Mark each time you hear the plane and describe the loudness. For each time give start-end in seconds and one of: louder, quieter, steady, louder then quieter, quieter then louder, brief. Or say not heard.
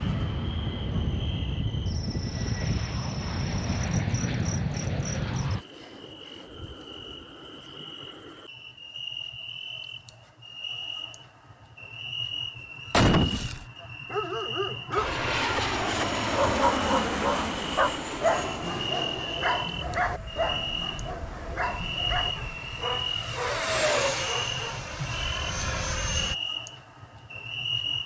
0.0-5.7 steady
14.9-26.4 quieter then louder.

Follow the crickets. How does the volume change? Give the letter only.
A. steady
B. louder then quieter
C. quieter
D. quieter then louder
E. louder
E.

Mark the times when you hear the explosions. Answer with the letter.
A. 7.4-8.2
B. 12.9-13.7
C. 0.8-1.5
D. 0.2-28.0
B.